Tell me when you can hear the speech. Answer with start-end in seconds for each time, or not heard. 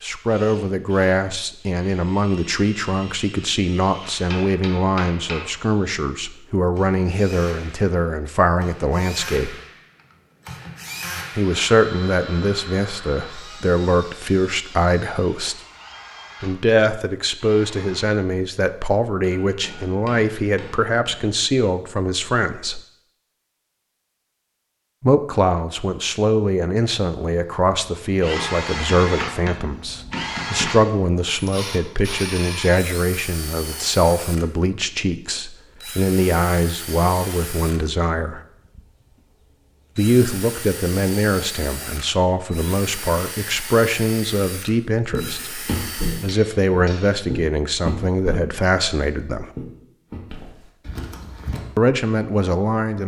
0.0-9.6, 11.3-15.6, 16.4-22.8, 25.0-38.4, 40.0-49.5, 51.8-53.0.